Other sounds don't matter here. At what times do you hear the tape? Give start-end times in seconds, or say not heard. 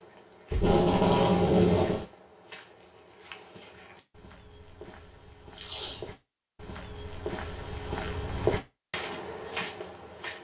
0.5-2.0, 5.5-6.1.